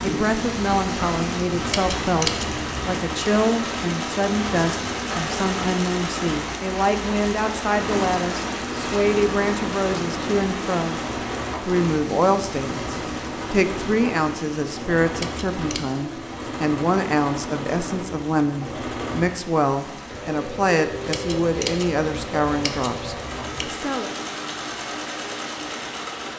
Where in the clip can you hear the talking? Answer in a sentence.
The talking can be heard from 0.0 to 11.0 s and from 11.6 to 24.1 s.